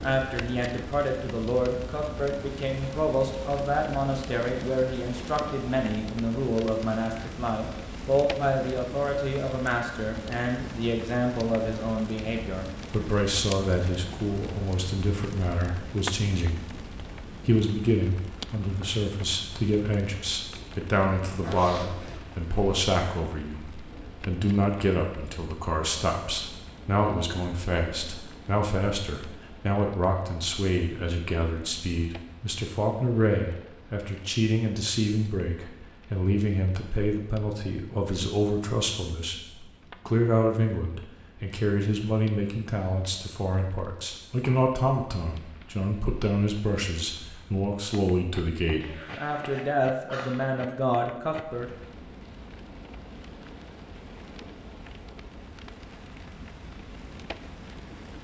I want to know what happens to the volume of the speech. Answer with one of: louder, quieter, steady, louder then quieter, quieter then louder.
steady.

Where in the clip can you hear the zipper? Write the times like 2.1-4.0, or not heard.
20.5-22.2, 48.8-50.8.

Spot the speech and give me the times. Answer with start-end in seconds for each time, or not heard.
0.0-39.4, 40.0-51.6.